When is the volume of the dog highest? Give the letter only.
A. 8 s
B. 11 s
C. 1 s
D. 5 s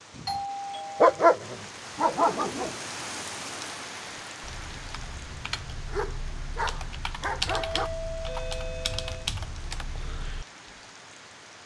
C.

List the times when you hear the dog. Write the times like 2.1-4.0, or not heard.
1.0-2.7, 5.9-7.9.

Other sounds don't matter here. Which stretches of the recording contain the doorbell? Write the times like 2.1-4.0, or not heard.
0.2-1.1, 7.7-9.3.